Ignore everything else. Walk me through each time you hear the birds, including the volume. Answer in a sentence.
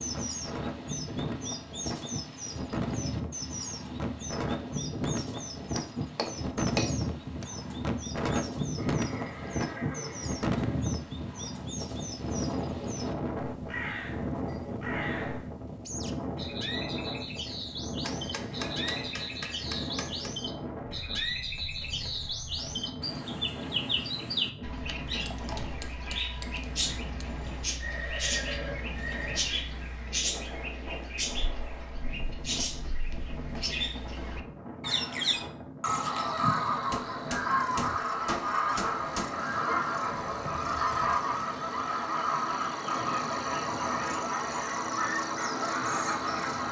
You can hear the birds from 0.0 to 46.6 s, getting louder.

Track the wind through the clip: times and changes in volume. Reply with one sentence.
The wind can be heard from 0.0 to 46.6 s, getting quieter.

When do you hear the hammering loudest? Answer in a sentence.
The loudest moment of the hammering is at 7 seconds.